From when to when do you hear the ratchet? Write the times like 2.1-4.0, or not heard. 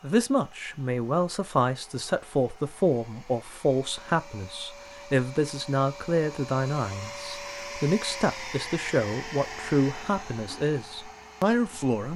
not heard.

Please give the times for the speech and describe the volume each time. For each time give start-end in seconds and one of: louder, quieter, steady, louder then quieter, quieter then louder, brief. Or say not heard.
0.0-12.1 steady.